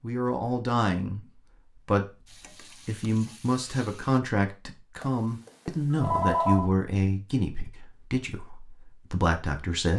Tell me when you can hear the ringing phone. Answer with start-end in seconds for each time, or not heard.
5.0-6.7.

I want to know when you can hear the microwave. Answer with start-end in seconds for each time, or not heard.
not heard.